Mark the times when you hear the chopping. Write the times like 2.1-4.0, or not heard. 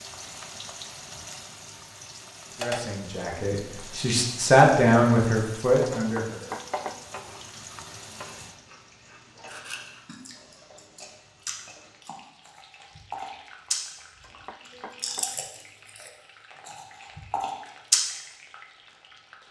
6.2-7.0, 14.2-15.3.